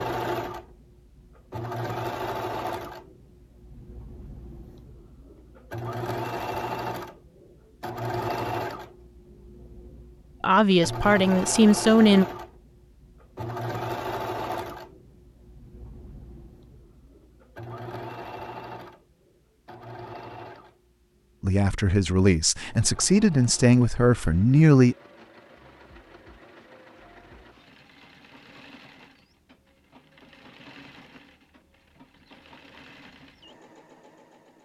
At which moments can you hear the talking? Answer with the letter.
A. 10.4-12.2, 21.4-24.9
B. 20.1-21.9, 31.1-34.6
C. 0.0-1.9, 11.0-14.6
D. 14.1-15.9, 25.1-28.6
A.